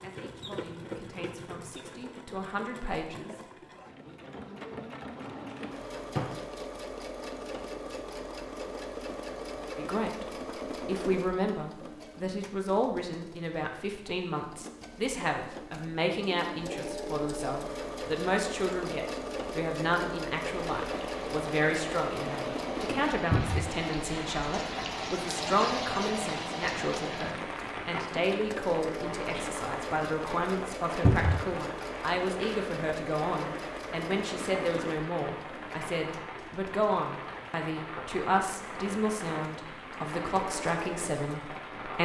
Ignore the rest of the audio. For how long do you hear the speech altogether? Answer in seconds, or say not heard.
35 s.